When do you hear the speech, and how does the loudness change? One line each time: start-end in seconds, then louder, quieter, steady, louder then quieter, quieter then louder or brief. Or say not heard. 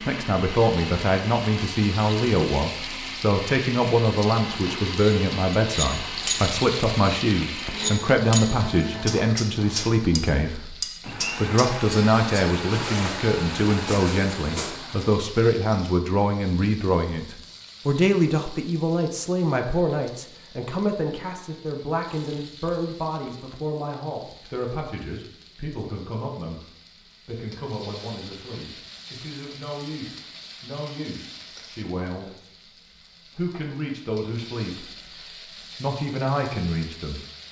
0.1-10.8 steady
11.3-37.2 quieter then louder.